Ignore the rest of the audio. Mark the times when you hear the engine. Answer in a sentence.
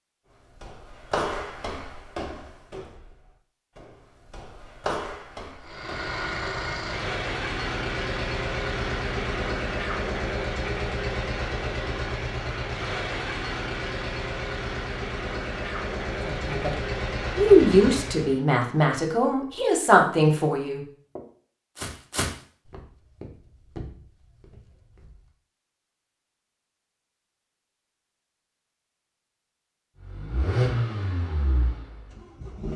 You can hear the engine from 5.6 to 18.4 s and from 29.9 to 32.7 s.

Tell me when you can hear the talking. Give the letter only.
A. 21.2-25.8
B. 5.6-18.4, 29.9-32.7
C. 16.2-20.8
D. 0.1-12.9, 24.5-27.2
C.